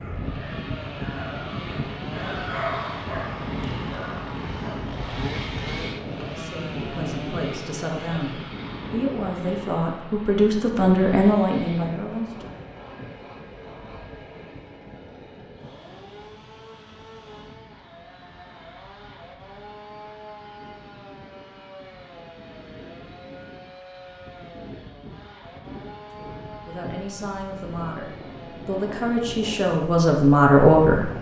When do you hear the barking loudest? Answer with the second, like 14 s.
3 s.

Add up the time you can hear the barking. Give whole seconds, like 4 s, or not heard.
5 s.